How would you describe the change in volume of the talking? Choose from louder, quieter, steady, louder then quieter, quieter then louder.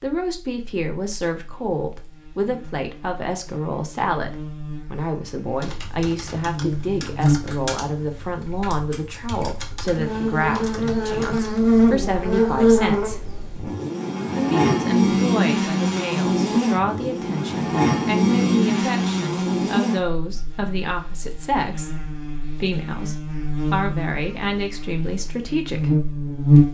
steady.